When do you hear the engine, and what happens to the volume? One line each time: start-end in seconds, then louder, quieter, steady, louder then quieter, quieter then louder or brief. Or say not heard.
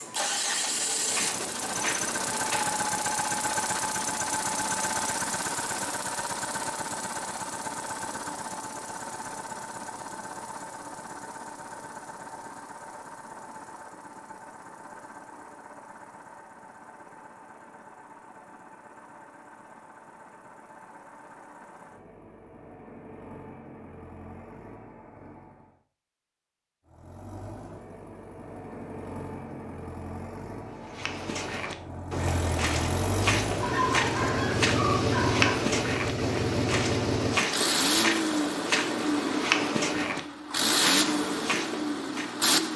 0.0-25.8 quieter
26.9-42.7 louder.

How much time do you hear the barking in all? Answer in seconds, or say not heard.
2 s.